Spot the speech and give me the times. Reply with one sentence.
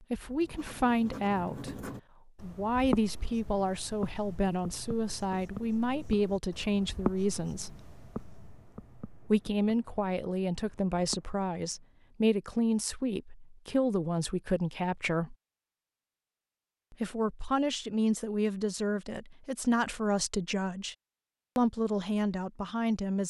The speech can be heard from 0.0 to 7.8 s, from 9.3 to 15.3 s, from 16.9 to 20.9 s and from 21.6 to 23.2 s.